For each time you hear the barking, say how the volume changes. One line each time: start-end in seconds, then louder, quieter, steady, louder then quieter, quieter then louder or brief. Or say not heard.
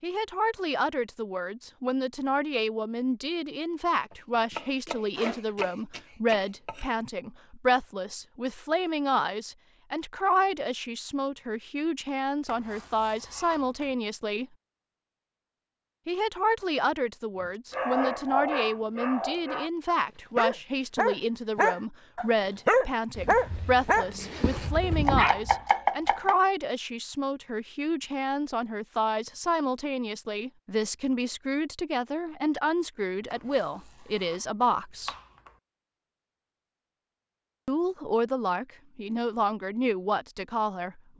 17.7-25.6 louder then quieter.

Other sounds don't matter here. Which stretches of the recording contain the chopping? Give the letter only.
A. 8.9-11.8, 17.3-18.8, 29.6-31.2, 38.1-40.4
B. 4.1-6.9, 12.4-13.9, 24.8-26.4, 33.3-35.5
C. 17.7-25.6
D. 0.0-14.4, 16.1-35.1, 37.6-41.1
B.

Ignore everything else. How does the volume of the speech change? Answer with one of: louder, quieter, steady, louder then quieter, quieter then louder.
steady.